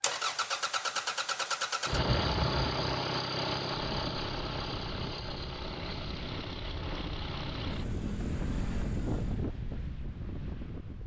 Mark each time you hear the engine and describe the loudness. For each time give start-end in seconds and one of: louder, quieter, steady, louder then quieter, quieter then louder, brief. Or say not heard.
0.0-9.4 quieter.